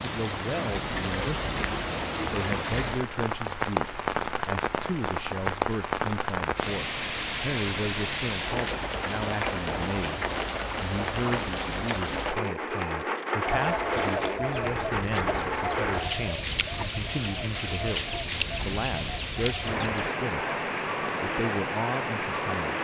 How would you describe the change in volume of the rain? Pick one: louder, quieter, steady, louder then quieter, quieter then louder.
steady.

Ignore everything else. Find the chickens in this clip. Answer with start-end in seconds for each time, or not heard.
13.4-20.0.